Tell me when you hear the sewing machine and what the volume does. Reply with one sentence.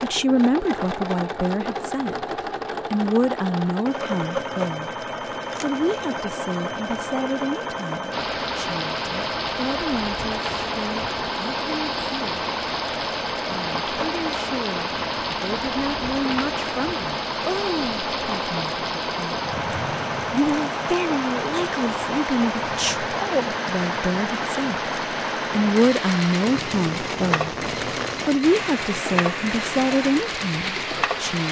You can hear the sewing machine from 0.0 to 31.4 s, at a steady volume.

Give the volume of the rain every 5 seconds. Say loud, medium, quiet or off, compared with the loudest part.
off, loud, loud, loud, loud, loud, loud.